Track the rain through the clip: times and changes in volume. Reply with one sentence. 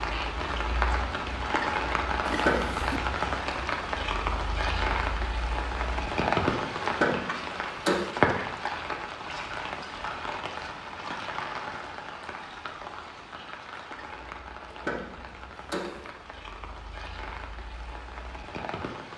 You can hear the rain from 0.0 to 19.1 s, getting quieter.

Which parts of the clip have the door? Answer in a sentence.
You can hear the door from 2.2 to 2.8 s, from 6.8 to 8.0 s and from 14.7 to 16.1 s.